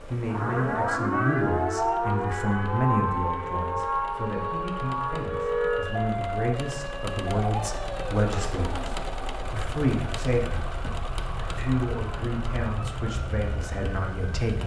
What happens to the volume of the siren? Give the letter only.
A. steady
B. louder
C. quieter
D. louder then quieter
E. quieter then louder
C.